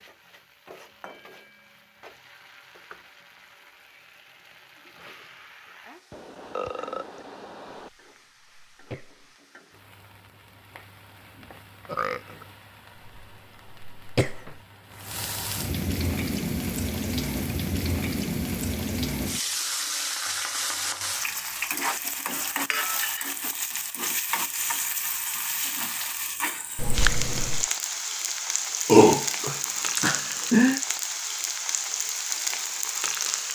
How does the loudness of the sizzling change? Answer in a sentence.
The volume of the sizzling goes up.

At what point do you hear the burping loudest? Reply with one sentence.
The loudest moment of the burping is at 29 seconds.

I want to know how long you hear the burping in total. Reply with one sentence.
You can hear the burping for 4 seconds altogether.